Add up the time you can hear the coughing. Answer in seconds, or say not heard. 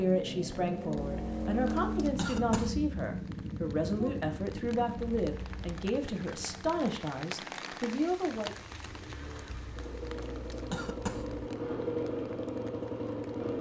5 s.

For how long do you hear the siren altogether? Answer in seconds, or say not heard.
not heard.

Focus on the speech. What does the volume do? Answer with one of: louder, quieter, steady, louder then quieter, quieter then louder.
steady.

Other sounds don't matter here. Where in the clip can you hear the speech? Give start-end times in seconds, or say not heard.
0.0-8.6.